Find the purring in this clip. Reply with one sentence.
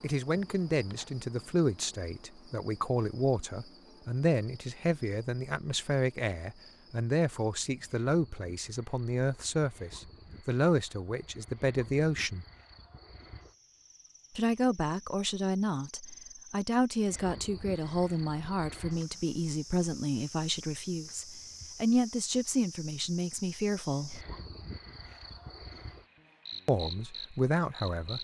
You can't hear the purring here.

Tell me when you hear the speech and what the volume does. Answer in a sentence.
You can hear the speech from 0.0 to 12.4 s, at a steady volume; from 14.3 to 24.2 s, at a steady volume; and briefly from 26.6 to 28.1 s.